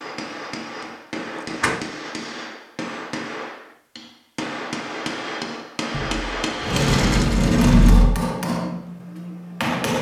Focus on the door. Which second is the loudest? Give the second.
8 s.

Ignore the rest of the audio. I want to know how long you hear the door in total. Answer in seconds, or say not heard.
3 s.